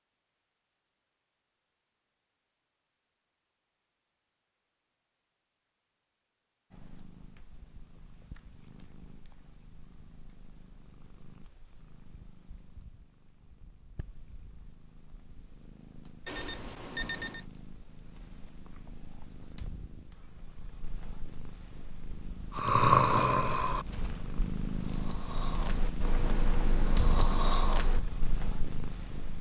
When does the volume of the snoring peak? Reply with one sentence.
The loudest moment of the snoring is at 23 seconds.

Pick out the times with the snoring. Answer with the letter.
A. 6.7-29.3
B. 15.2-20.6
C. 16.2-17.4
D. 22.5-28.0
D.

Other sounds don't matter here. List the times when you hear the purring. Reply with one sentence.
You can hear the purring from 6.7 to 29.3 s.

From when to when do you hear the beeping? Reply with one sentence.
The beeping can be heard from 16.2 to 17.4 s.